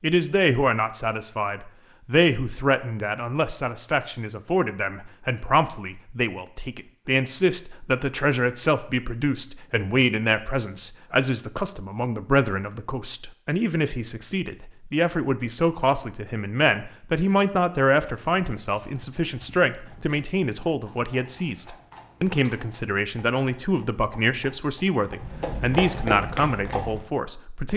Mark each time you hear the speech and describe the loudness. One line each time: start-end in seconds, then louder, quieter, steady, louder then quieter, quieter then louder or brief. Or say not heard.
0.0-27.7 steady.